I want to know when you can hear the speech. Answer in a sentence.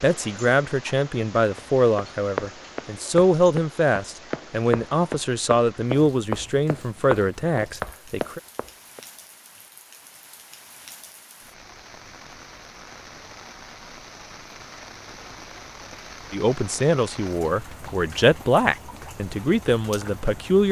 The speech can be heard from 0.0 to 8.4 s and from 16.3 to 20.6 s.